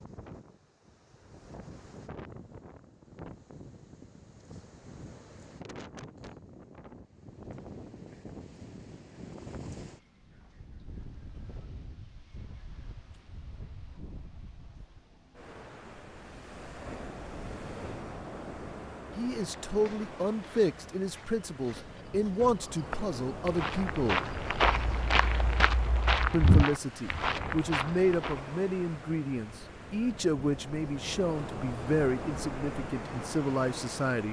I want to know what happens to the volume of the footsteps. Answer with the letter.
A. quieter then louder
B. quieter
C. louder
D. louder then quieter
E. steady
C.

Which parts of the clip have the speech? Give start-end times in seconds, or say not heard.
19.1-24.2, 26.3-34.2.